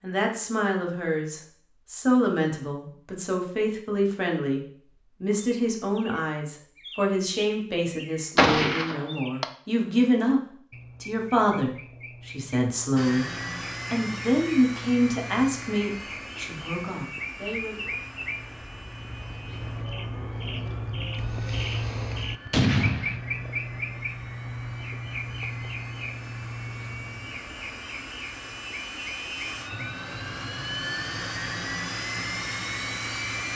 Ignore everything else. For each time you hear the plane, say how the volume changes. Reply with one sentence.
The plane can be heard from 12.9 to 33.5 s, getting quieter then louder.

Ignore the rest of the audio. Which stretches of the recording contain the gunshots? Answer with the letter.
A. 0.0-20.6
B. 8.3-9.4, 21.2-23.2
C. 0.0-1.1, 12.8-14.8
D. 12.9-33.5
B.